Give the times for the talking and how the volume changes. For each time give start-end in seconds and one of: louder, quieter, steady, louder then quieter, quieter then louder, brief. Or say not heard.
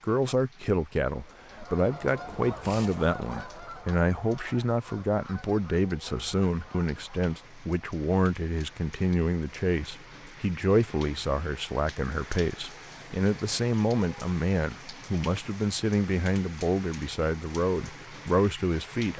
0.0-19.1 steady.